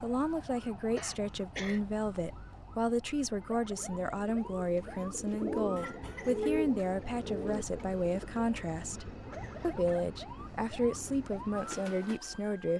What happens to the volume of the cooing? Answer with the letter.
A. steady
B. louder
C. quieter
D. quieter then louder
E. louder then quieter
E.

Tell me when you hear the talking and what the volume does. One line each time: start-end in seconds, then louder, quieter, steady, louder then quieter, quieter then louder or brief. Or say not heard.
0.0-12.7 steady.